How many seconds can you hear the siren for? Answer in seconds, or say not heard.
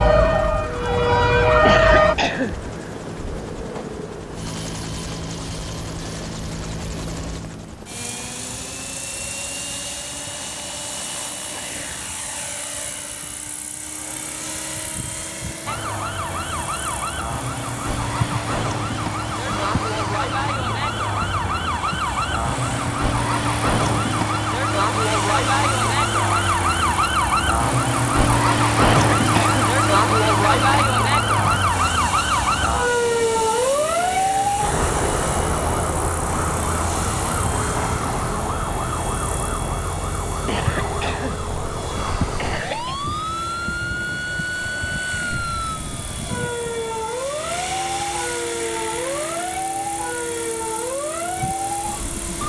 39 s.